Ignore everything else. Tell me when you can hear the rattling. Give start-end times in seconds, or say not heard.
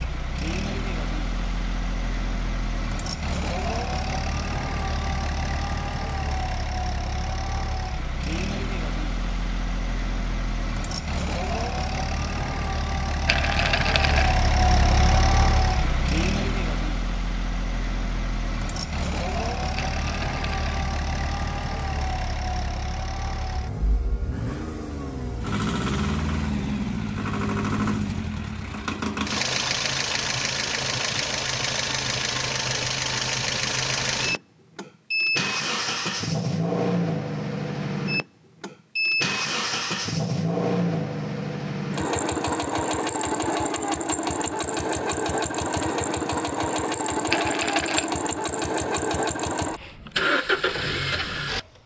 13.2-14.3, 19.8-20.9, 47.3-48.1.